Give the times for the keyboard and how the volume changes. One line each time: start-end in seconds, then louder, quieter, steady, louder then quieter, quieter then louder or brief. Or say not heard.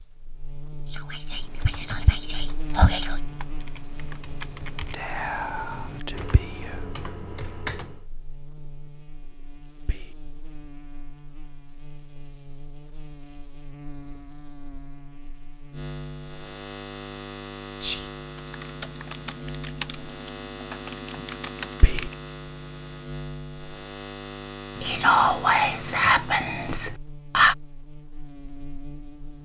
1.3-8.1 louder
18.4-22.4 quieter then louder.